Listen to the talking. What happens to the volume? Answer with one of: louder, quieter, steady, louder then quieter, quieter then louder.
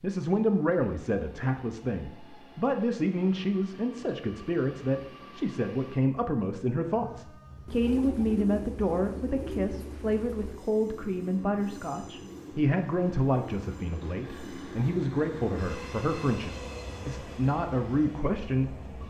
steady.